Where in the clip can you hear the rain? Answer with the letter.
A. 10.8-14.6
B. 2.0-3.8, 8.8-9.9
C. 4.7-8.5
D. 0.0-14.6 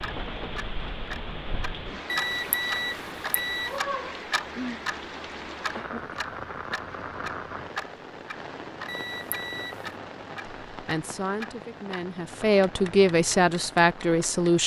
D.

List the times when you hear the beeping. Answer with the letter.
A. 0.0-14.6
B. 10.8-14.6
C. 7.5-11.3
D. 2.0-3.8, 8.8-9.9
D.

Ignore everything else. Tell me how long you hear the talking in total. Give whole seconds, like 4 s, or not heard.
4 s.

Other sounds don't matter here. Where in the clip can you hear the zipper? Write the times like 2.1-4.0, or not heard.
not heard.